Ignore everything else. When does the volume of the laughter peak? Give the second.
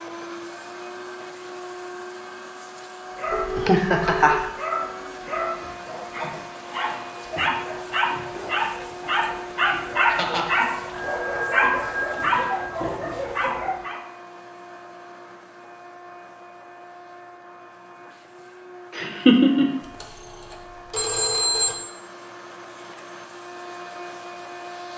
19 s.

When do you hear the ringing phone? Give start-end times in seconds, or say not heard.
3.3-4.5, 10.9-12.8, 19.8-21.8.